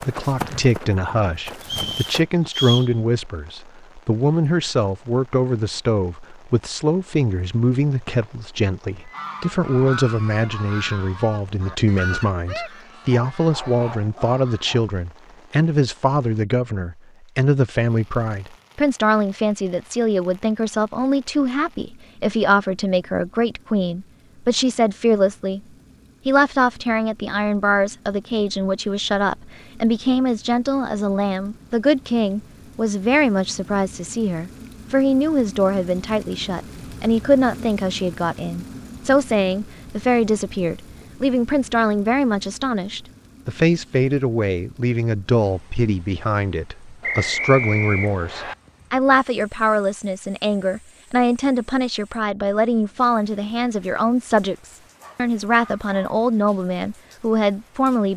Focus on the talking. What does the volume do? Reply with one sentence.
The volume of the talking stays about the same.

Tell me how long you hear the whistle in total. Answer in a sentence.
The whistle can be heard for 3 seconds in total.